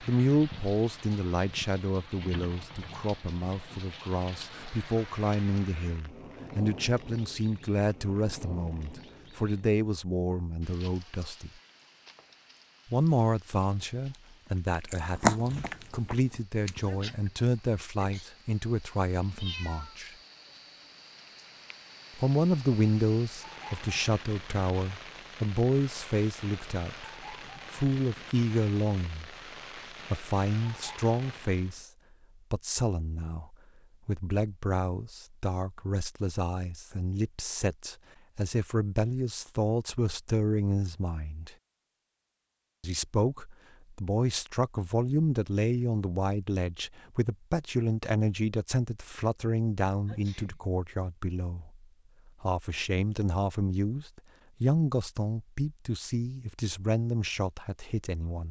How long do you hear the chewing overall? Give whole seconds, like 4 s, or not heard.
3 s.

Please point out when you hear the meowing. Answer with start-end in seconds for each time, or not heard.
19.4-20.0.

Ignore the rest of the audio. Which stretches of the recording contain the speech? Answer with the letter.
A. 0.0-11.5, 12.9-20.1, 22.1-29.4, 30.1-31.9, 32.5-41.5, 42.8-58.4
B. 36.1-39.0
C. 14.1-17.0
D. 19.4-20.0
A.